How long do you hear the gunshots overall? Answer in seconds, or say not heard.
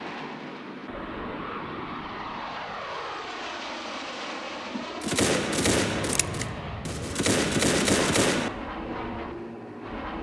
4 s.